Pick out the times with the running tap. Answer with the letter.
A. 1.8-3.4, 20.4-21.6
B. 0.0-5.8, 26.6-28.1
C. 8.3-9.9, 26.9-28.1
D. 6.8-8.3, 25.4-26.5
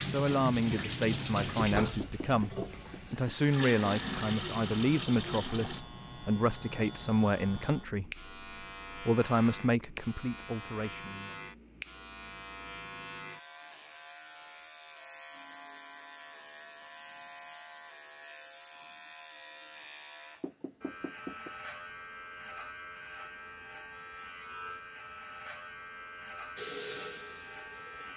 B.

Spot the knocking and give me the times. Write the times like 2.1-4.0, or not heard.
1.8-3.4, 20.4-21.6.